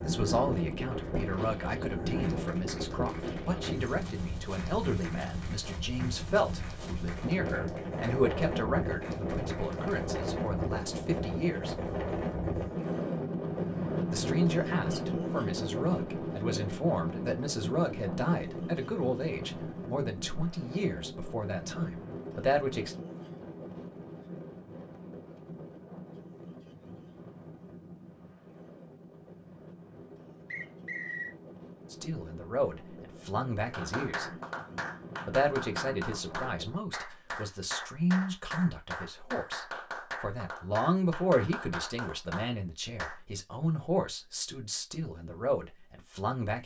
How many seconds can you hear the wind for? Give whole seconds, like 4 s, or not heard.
37 s.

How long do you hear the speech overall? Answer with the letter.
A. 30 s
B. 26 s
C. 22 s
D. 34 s
D.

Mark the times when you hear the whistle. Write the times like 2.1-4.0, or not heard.
30.5-31.4.